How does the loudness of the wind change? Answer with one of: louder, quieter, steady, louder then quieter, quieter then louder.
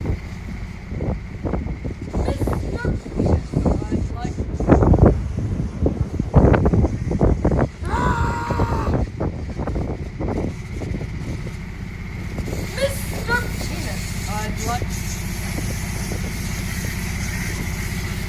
louder then quieter.